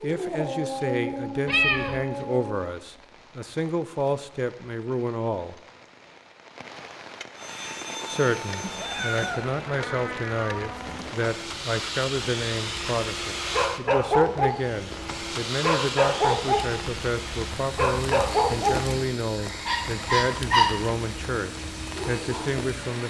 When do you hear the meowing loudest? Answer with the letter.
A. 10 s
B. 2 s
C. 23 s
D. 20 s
B.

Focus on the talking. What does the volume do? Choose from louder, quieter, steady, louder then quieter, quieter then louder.
steady.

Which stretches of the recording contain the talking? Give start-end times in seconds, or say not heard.
0.0-5.5, 8.1-23.0.